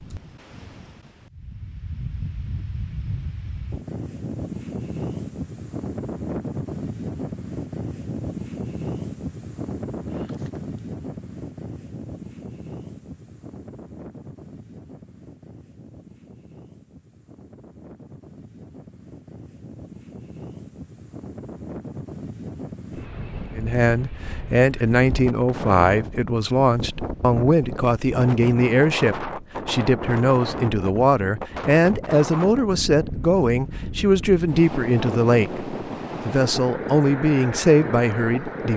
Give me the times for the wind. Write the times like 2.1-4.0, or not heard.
0.0-38.7.